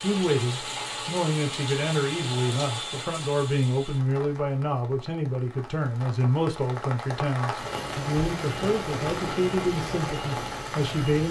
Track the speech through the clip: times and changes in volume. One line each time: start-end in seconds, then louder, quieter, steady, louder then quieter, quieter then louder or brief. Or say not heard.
0.0-11.2 steady.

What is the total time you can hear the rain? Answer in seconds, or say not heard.
11 s.